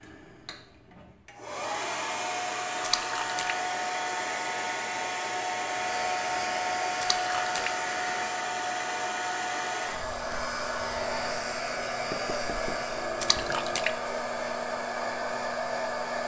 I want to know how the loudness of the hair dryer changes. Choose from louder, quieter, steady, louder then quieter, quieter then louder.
steady.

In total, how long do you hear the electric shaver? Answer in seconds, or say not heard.
5 s.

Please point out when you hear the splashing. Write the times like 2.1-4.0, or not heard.
2.8-3.5, 7.0-7.7, 13.2-13.9.